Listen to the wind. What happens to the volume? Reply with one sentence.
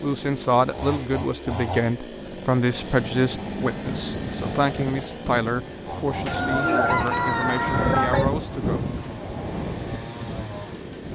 The volume of the wind goes up, then down.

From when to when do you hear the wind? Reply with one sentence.
You can hear the wind from 2.6 to 11.1 s.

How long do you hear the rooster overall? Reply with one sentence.
The rooster can be heard for 2 seconds in total.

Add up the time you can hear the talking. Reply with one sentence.
You can hear the talking for 9 seconds altogether.